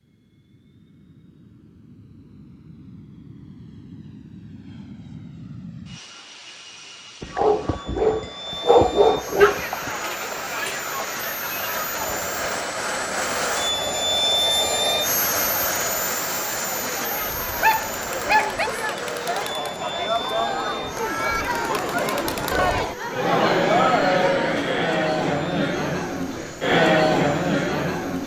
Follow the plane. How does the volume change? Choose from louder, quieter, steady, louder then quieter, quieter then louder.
louder then quieter.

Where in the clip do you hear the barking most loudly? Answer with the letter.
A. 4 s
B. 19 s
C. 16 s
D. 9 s
D.